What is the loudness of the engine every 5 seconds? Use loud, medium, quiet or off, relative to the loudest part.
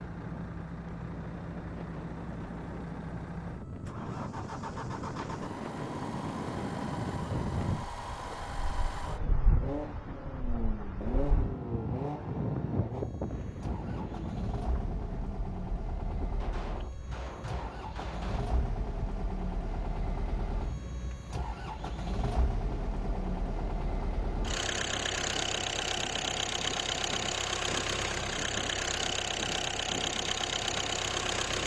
medium, medium, medium, medium, medium, loud, loud.